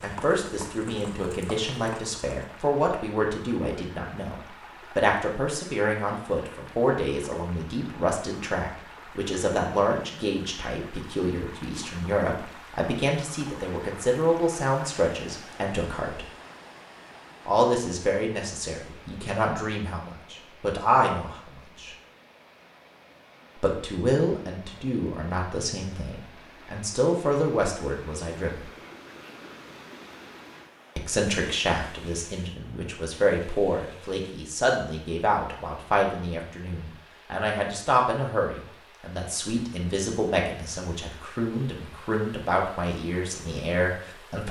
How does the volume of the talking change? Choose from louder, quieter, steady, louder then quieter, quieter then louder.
steady.